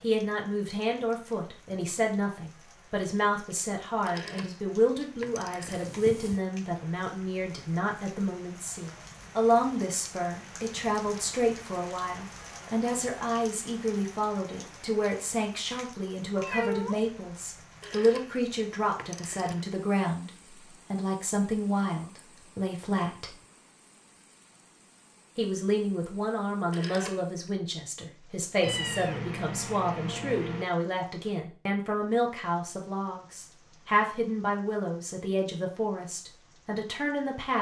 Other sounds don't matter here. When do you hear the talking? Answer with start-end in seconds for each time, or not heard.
0.0-23.4, 25.4-37.5.